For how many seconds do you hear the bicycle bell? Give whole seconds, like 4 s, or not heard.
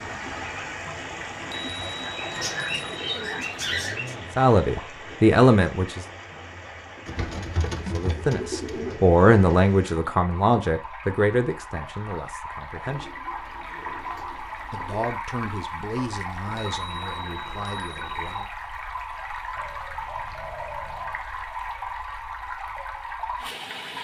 4 s.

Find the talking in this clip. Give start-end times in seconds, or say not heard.
4.3-6.0, 7.9-13.1, 14.7-18.4.